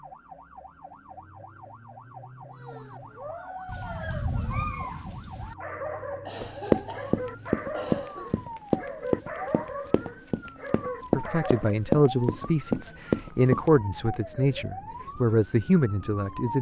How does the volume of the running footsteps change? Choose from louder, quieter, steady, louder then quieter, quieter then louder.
quieter then louder.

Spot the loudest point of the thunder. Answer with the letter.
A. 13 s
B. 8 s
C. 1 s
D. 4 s
D.